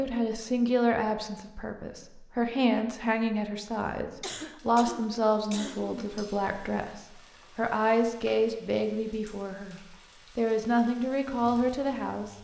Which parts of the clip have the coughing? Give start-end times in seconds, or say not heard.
4.2-6.2.